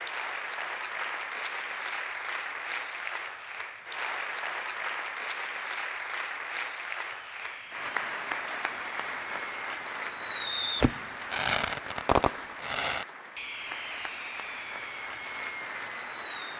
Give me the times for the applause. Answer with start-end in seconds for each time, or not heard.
0.0-16.5.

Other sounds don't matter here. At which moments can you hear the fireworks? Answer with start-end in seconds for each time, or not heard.
7.1-16.5.